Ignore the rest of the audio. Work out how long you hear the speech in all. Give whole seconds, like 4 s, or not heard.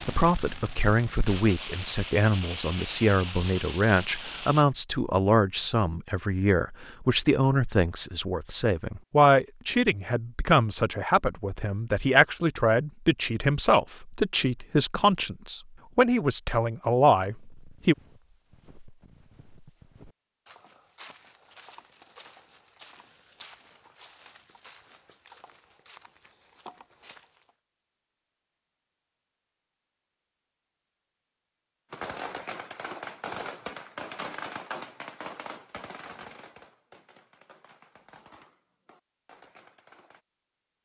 18 s.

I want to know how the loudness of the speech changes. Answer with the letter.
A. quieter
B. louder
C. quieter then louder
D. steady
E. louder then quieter
D.